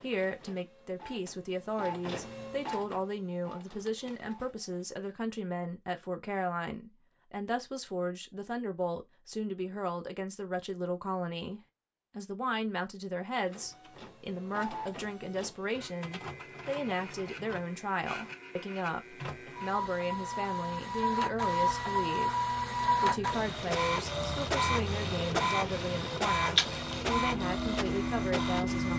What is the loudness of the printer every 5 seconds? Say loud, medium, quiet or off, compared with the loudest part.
quiet, off, quiet, quiet, loud, loud.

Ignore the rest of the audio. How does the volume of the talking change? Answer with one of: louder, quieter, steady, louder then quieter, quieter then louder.
steady.